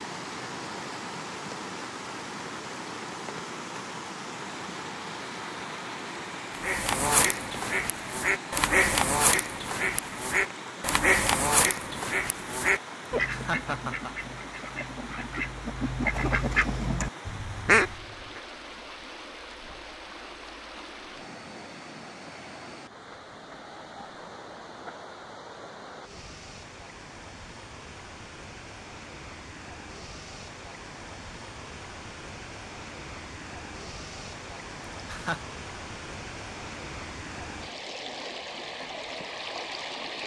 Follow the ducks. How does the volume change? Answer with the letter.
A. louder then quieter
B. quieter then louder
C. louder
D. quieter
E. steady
B.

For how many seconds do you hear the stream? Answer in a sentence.
The stream can be heard for 40 seconds in total.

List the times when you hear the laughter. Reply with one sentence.
The laughter can be heard from 13.2 to 14.1 s and from 35.0 to 35.4 s.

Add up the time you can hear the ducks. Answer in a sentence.
The ducks can be heard for 12 seconds in total.